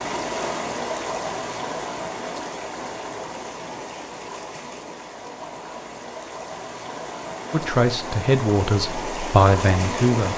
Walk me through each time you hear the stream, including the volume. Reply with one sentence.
You can hear the stream from 0.0 to 10.3 s, getting quieter then louder.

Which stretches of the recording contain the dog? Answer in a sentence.
You can't hear the dog here.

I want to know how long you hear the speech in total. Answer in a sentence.
You can hear the speech for 3 seconds altogether.